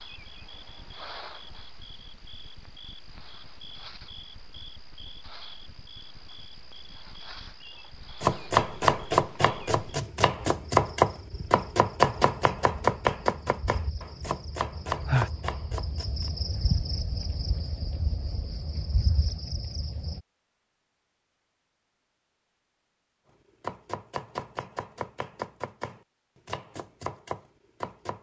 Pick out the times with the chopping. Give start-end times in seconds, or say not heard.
8.2-16.3, 23.6-28.1.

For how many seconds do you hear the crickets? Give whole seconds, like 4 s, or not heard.
20 s.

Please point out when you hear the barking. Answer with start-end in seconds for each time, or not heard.
not heard.